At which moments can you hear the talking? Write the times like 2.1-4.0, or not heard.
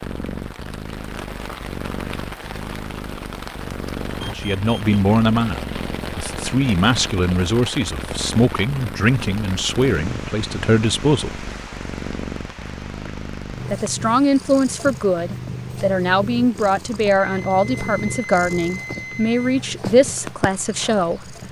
4.3-11.4, 13.6-21.4.